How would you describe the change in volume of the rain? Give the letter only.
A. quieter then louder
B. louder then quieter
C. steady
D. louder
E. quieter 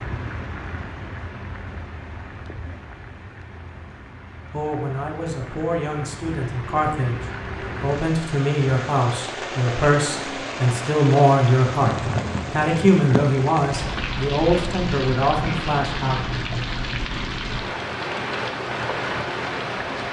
D.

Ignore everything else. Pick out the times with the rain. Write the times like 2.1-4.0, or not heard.
0.0-20.0.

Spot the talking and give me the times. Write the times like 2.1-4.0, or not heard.
4.5-16.2.